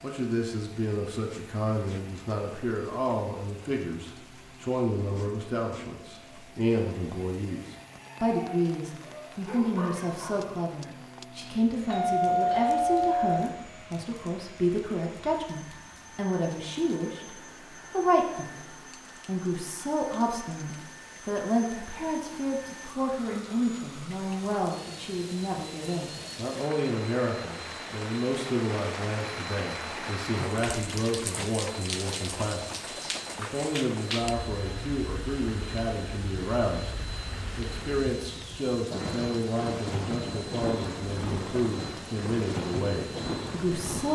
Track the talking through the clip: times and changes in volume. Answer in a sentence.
The talking can be heard from 0.0 to 44.1 s, at a steady volume.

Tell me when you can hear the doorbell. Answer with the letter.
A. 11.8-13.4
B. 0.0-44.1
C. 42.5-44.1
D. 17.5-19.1
A.